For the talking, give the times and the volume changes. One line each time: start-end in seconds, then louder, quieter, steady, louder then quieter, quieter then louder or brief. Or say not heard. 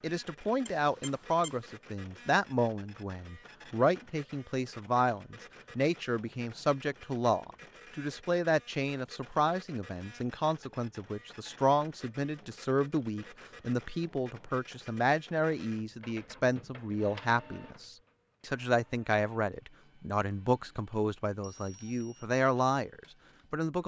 0.0-23.8 steady.